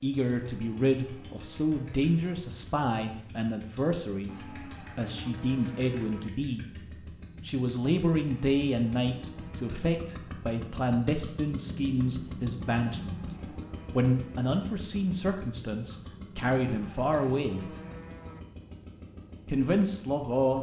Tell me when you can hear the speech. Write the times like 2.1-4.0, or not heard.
0.0-6.7, 7.5-13.2, 13.9-17.6, 19.4-20.5.